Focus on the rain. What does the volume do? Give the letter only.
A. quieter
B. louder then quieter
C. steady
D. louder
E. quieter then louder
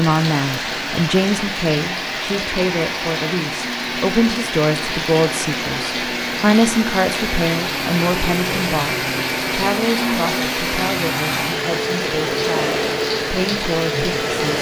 C.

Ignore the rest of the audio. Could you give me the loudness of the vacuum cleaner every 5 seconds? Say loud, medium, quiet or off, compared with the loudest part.
medium, loud, loud.